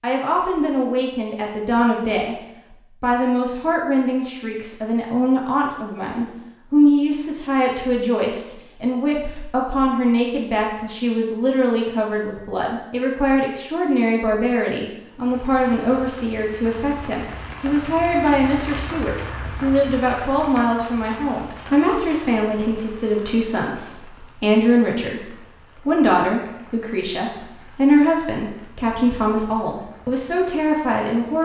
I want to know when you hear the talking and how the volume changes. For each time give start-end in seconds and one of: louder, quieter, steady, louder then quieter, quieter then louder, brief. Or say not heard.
0.0-2.4 brief
3.0-31.4 steady.